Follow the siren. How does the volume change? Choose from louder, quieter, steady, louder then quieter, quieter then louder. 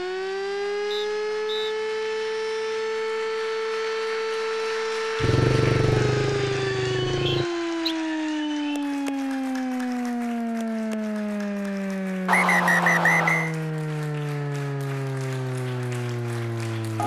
steady.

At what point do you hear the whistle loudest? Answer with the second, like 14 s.
13 s.